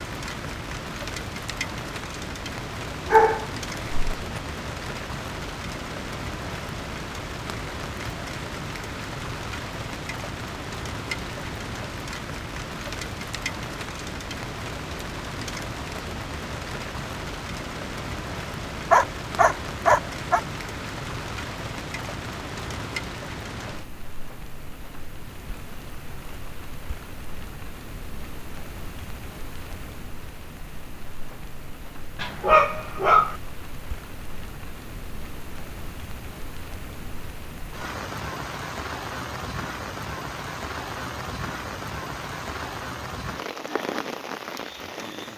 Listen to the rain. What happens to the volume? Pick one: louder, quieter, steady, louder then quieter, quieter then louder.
quieter then louder.